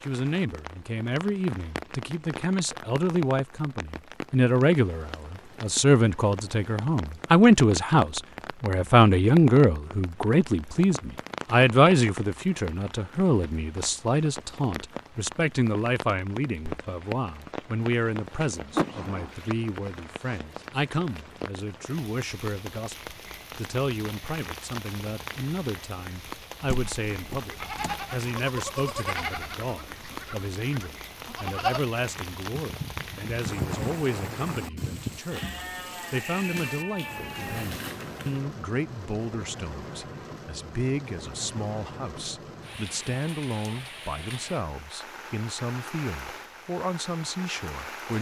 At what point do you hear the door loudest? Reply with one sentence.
The volume of the door peaks at 19 seconds.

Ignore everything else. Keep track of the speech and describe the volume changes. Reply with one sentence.
The volume of the speech goes down.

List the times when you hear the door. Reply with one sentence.
The door can be heard from 18.8 to 19.3 s and from 26.6 to 27.9 s.